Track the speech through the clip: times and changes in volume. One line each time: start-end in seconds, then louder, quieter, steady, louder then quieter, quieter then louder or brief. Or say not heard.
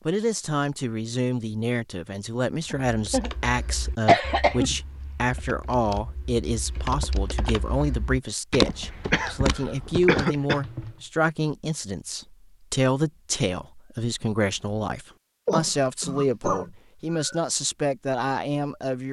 0.1-19.0 steady.